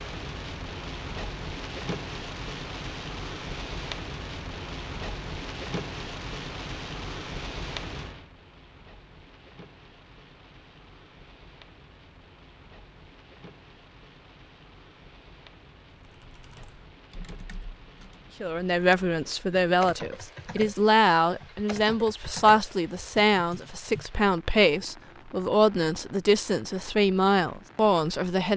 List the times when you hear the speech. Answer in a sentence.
The speech can be heard from 18.4 to 28.5 s.